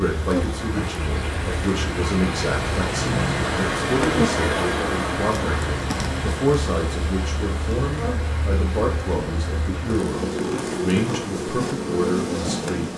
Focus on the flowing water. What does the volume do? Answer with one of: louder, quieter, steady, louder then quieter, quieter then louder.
louder then quieter.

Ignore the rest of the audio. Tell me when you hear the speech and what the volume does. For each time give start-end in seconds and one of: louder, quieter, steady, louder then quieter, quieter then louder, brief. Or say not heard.
0.0-12.8 steady.